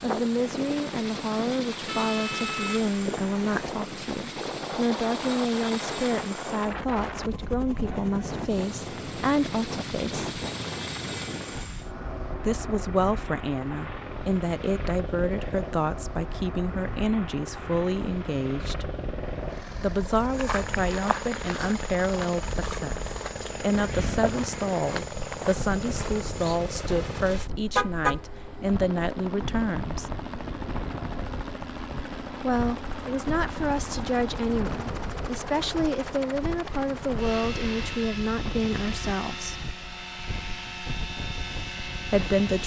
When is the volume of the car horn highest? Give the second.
28 s.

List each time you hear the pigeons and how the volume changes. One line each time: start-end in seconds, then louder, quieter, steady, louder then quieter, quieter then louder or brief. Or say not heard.
not heard.